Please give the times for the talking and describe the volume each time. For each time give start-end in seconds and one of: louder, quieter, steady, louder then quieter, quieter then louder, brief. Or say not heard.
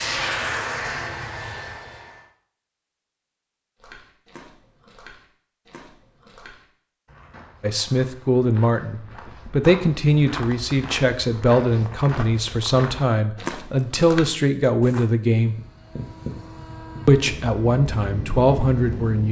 7.6-15.6 steady
17.1-19.2 brief.